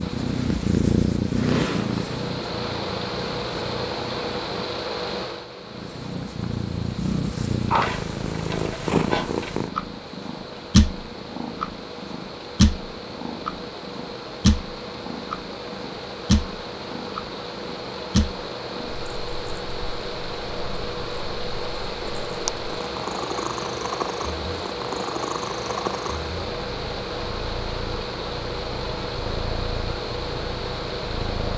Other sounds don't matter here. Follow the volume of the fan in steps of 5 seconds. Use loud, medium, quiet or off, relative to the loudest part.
loud, medium, medium, loud, loud, loud, loud.